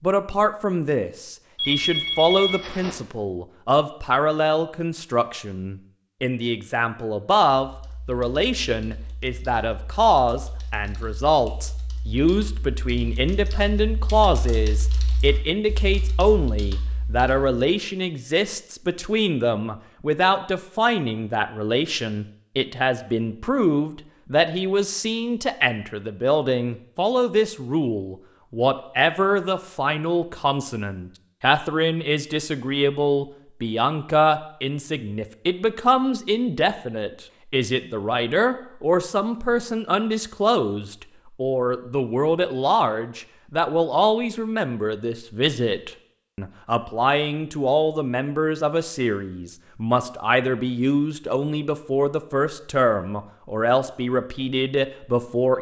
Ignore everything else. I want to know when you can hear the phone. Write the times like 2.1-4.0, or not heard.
1.6-3.0.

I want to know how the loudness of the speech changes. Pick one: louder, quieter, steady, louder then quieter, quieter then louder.
steady.